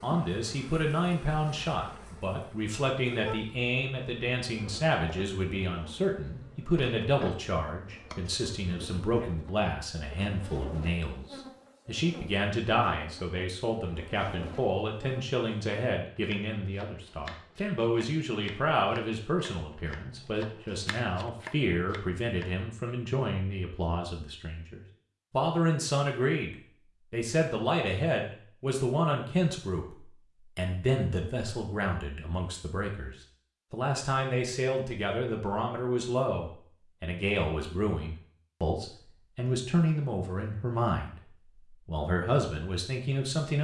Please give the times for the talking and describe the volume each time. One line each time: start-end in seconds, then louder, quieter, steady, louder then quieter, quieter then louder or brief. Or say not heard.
0.0-43.5 steady.